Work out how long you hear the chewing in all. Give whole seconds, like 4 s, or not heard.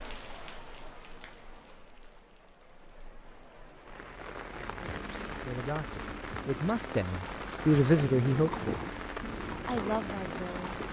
3 s.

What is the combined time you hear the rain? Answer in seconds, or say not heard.
11 s.